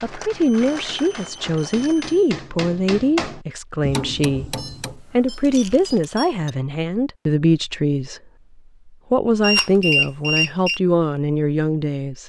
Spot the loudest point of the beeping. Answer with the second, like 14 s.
10 s.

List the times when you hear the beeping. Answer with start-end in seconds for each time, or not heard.
0.4-2.2, 4.5-6.5, 9.4-10.8.